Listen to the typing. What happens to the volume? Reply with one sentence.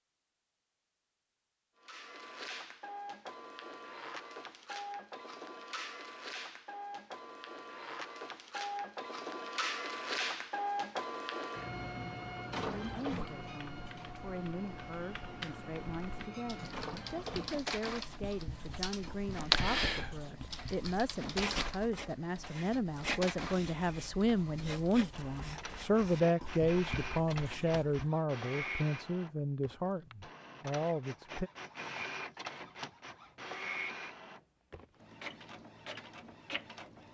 The volume of the typing goes up, then down.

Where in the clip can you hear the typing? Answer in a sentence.
The typing can be heard from 13.1 to 21.8 s.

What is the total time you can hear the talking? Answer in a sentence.
The talking can be heard for 19 seconds in total.